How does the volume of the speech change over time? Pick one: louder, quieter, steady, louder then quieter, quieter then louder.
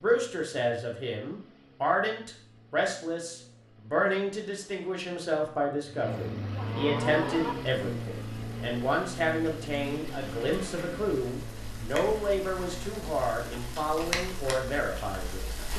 steady.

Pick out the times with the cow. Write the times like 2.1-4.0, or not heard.
6.2-7.5.